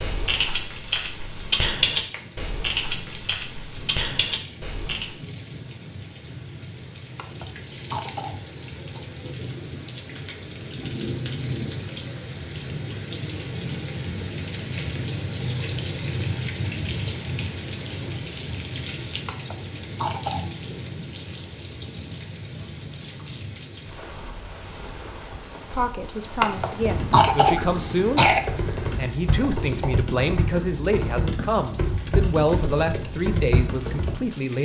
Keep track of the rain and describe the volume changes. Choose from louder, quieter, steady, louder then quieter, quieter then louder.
louder then quieter.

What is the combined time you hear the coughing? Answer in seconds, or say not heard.
5 s.